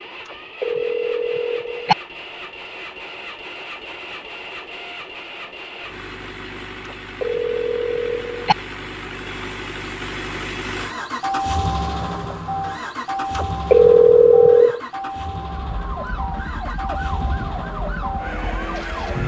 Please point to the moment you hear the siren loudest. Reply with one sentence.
The loudest moment of the siren is at 19 seconds.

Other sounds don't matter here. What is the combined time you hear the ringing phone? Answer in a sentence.
You can hear the ringing phone for 4 seconds altogether.